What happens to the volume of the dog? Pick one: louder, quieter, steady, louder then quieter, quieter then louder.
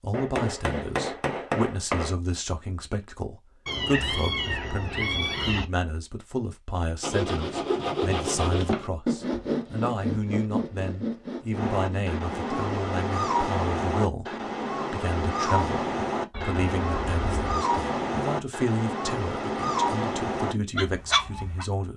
steady.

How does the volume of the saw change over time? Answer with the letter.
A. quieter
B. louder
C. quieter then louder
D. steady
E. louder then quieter
A.